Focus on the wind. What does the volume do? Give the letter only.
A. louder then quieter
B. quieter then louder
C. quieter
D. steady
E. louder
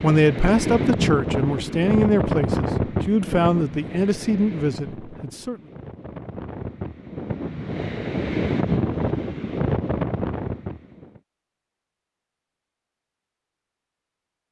B.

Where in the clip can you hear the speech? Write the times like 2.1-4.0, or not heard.
0.0-5.6.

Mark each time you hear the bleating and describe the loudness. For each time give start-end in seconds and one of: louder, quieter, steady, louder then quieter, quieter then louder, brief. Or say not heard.
not heard.